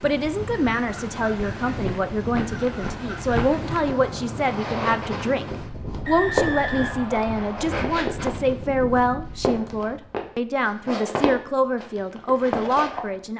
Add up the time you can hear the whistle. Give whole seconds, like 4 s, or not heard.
2 s.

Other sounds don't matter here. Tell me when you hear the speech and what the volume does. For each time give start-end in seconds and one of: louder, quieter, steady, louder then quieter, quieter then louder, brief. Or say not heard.
0.0-13.3 steady.